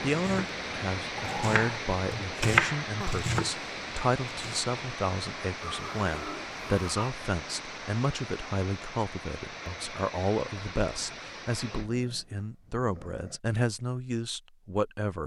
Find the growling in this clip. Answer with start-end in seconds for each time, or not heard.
1.1-1.6, 5.6-7.2, 11.7-13.4.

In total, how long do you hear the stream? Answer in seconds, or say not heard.
12 s.